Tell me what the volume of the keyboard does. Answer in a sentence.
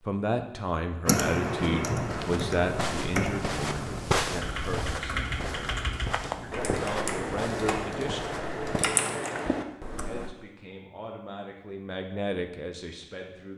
The loudness of the keyboard stays about the same.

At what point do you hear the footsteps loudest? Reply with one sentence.
The volume of the footsteps peaks at 4 seconds.